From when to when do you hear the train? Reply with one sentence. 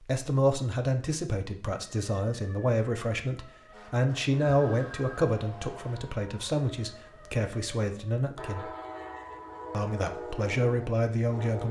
You can hear the train from 8.3 to 11.6 s.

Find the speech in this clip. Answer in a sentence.
You can hear the speech from 0.0 to 8.7 s and from 9.7 to 11.6 s.